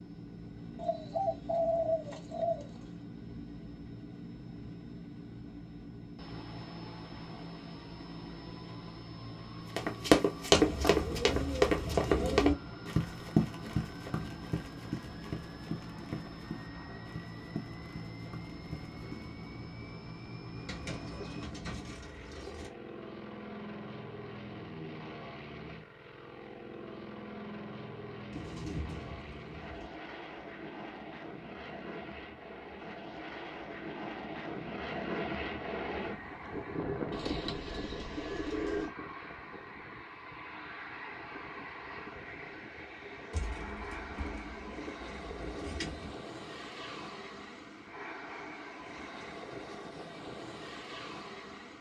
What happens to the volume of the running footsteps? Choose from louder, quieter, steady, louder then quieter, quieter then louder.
quieter.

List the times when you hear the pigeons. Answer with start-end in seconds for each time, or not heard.
0.8-2.8, 10.5-12.6, 20.6-22.7, 28.3-29.9, 37.1-38.9, 43.3-46.1.